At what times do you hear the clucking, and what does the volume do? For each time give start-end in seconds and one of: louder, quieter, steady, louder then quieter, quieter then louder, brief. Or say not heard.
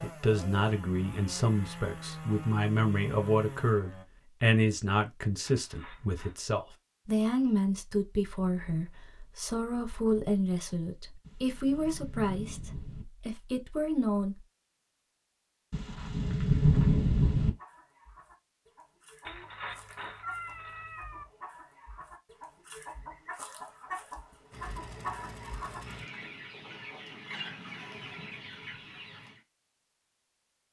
17.4-29.4 louder.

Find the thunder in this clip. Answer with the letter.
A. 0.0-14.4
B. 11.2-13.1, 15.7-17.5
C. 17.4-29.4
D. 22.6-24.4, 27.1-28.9
B.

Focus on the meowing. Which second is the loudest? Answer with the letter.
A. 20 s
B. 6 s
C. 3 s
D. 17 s
A.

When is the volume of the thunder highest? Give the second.
17 s.